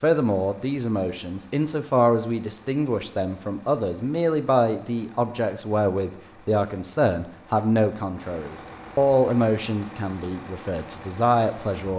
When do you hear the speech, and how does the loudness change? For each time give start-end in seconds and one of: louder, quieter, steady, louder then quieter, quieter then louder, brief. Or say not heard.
0.0-11.9 steady.